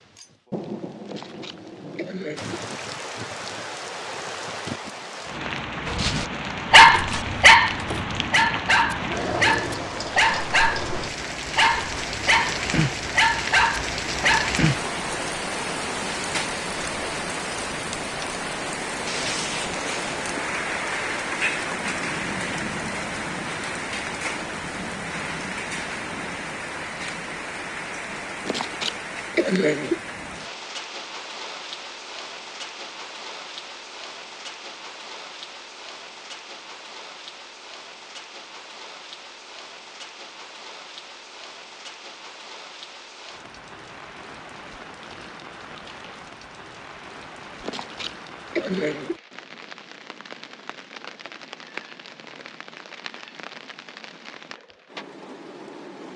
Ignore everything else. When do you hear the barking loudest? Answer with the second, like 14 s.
7 s.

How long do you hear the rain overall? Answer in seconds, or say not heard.
56 s.